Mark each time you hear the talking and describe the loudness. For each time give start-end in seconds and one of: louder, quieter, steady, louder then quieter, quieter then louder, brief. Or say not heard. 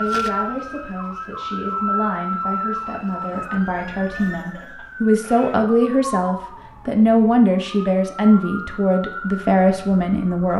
0.0-10.5 louder.